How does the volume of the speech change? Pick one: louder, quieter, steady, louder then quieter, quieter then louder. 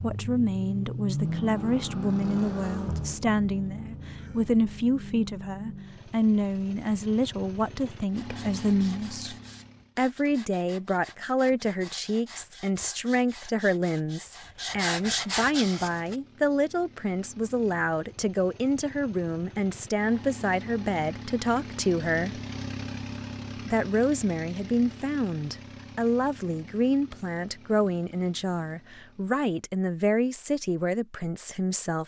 steady.